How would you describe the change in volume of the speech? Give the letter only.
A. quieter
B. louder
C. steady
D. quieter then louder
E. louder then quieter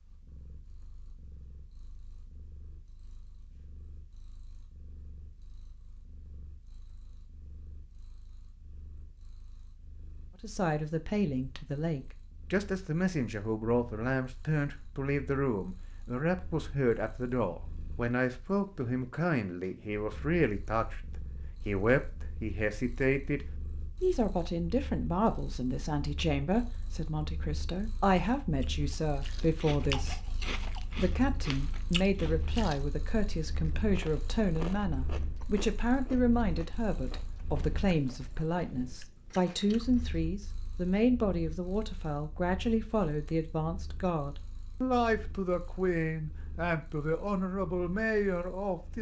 C.